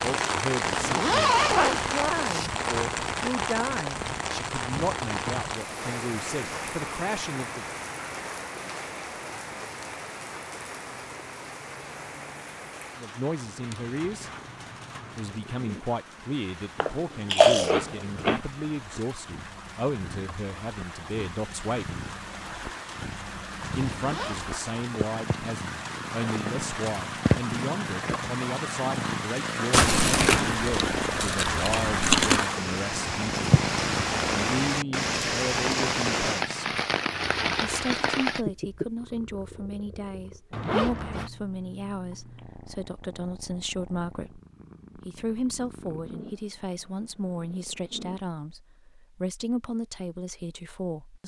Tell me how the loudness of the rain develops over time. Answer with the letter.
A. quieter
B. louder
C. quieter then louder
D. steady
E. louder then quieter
C.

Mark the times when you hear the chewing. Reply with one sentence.
You can hear the chewing from 16.8 to 18.4 s and from 29.7 to 32.5 s.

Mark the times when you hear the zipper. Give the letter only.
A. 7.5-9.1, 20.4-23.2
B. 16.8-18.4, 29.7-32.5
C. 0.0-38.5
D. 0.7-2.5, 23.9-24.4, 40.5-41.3
D.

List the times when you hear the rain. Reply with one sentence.
The rain can be heard from 0.0 to 38.5 s.